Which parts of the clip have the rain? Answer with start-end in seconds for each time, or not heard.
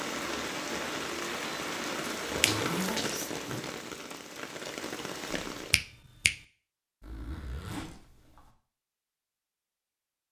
0.0-5.8.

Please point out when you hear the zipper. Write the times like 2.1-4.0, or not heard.
2.2-3.6, 7.0-8.5.